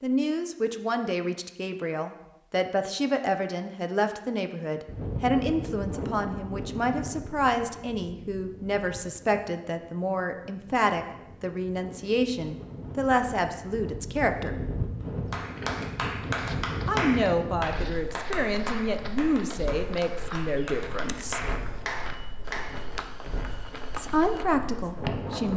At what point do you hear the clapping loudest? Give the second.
17 s.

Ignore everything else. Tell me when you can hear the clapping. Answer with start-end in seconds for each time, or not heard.
15.3-22.7.